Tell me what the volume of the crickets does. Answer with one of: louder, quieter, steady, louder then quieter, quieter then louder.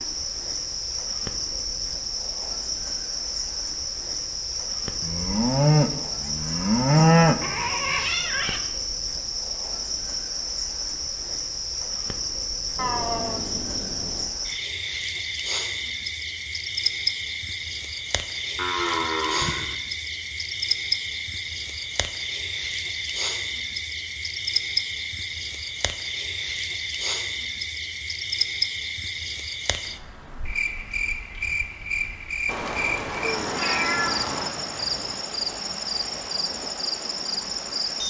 steady.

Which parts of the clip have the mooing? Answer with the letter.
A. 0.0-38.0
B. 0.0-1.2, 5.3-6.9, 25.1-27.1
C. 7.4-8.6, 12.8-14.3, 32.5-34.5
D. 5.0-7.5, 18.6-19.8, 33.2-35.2
D.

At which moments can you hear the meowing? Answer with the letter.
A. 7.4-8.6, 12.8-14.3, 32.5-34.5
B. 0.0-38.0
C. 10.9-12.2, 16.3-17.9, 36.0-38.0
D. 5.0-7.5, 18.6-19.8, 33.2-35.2
A.